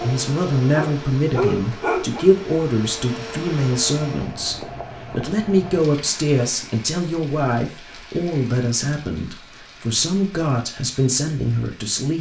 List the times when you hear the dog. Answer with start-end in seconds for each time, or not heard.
0.0-2.3.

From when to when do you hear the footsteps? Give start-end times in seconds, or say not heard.
not heard.